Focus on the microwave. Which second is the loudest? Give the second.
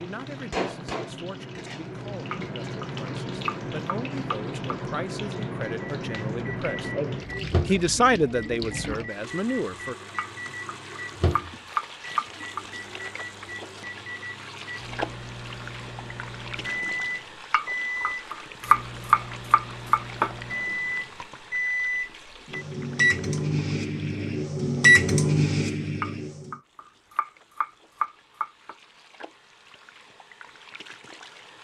25 s.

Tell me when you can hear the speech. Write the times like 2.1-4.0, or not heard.
0.0-6.9, 7.7-9.9.